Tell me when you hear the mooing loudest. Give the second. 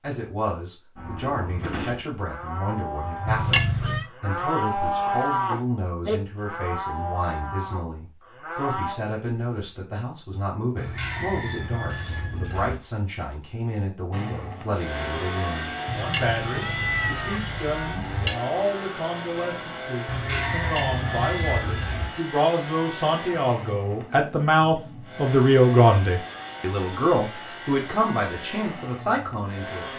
5 s.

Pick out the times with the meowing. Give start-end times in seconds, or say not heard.
3.2-4.0, 15.8-18.4, 20.6-21.6.